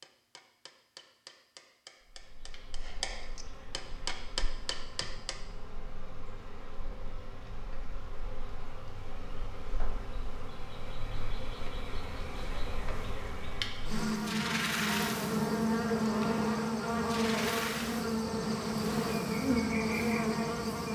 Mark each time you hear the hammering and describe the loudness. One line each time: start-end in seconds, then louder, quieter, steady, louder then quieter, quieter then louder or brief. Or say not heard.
0.0-5.5 louder.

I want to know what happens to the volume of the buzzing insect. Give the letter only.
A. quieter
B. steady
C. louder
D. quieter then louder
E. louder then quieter
C.